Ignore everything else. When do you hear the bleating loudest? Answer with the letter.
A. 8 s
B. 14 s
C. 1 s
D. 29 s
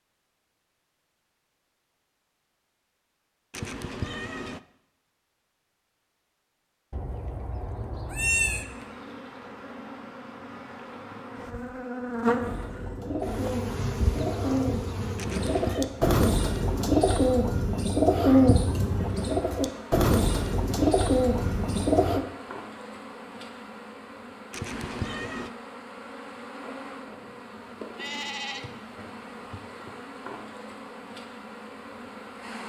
A.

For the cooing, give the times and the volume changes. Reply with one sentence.
You can hear the cooing from 12.3 to 22.2 s, getting louder.